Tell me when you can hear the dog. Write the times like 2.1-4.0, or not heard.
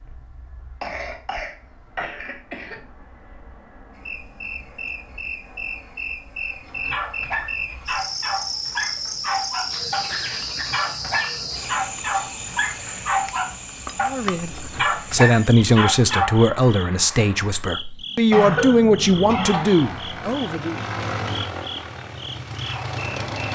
6.7-16.4.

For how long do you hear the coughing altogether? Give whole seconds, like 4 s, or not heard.
4 s.